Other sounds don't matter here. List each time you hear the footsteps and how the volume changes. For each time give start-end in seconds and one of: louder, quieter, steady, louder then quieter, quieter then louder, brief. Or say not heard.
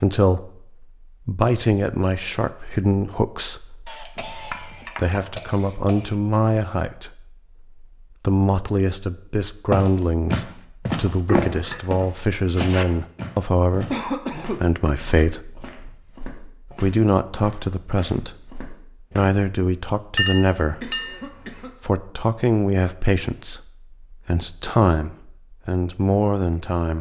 9.7-19.4 quieter.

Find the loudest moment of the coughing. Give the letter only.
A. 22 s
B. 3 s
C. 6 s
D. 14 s
D.